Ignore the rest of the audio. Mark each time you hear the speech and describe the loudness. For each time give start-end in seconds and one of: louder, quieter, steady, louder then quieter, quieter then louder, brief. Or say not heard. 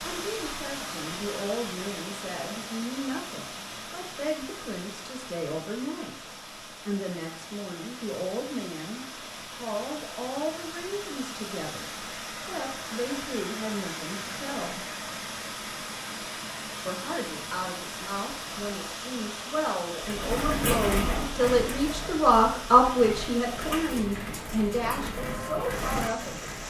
0.0-14.8 steady
16.9-26.4 louder then quieter.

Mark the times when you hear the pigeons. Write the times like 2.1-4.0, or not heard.
20.0-26.6.